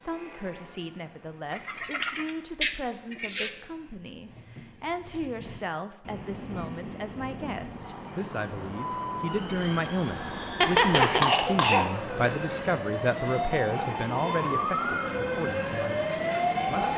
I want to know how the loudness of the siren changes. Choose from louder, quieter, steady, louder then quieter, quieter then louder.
louder.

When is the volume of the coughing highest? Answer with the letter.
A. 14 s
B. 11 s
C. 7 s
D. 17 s
B.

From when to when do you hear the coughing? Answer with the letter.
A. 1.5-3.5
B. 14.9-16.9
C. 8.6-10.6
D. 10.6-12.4
D.